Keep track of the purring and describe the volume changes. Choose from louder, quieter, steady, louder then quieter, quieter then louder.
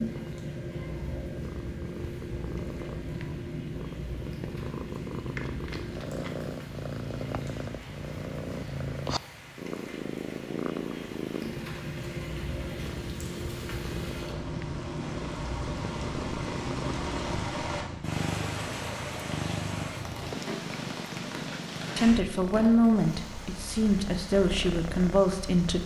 steady.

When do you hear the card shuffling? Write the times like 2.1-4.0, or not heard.
5.2-6.3.